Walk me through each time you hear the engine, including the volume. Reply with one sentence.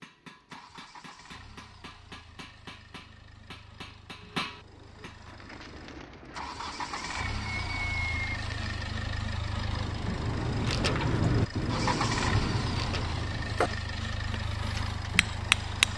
The engine can be heard from 0.0 to 15.9 s, getting louder.